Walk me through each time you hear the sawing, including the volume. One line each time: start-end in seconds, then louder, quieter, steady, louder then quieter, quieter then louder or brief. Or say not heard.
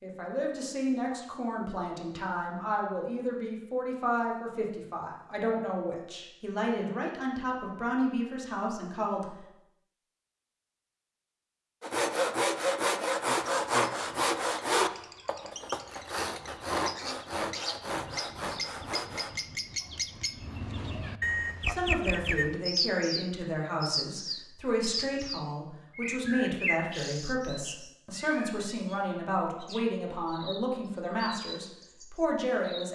11.8-19.4 quieter.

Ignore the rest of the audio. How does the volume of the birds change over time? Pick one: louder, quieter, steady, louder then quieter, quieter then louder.
louder then quieter.